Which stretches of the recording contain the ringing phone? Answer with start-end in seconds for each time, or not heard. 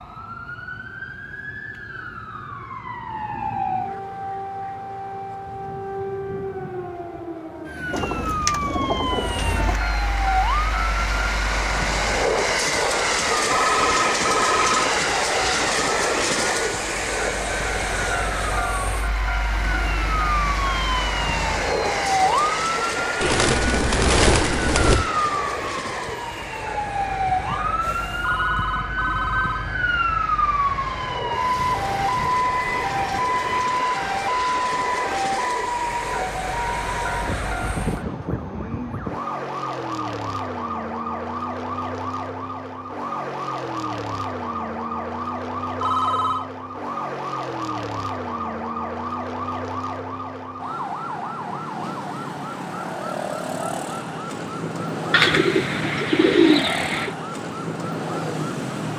13.5-15.1, 28.2-29.8, 45.8-46.5.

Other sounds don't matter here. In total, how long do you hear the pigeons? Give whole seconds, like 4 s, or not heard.
6 s.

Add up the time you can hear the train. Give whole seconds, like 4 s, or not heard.
29 s.